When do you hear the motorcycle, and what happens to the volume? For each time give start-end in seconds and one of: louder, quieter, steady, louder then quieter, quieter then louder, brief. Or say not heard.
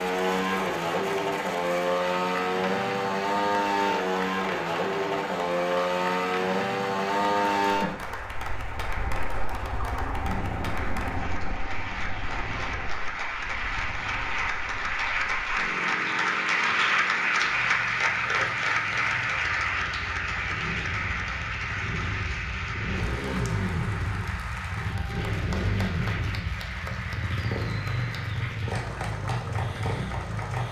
0.0-30.6 quieter then louder.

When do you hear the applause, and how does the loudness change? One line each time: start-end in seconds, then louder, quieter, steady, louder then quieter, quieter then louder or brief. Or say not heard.
0.0-30.6 louder then quieter.